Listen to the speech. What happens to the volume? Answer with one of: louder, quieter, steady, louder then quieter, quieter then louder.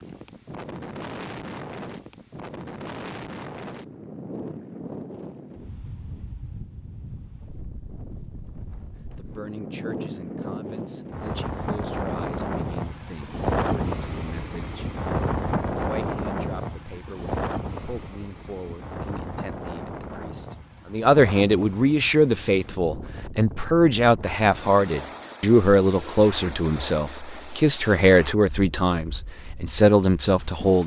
louder.